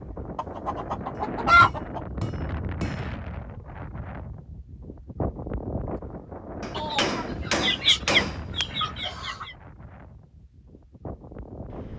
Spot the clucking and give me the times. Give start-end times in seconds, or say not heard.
0.3-2.0, 6.8-9.5.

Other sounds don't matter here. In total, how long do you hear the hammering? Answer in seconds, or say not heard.
4 s.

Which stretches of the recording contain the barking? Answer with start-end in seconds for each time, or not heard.
not heard.